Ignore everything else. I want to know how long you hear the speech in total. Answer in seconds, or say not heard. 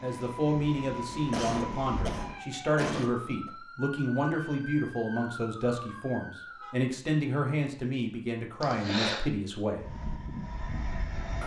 10 s.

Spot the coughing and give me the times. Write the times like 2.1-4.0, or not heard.
1.3-3.5, 8.6-9.2.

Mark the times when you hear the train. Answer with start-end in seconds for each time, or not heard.
0.0-2.4, 9.8-11.4.